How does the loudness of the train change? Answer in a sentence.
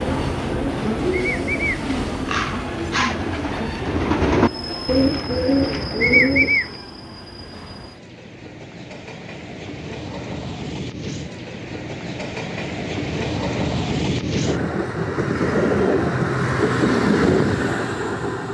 The loudness of the train goes down, then up.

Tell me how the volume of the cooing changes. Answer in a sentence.
The loudness of the cooing goes up.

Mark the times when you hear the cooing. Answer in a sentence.
The cooing can be heard from 0.0 to 6.7 s.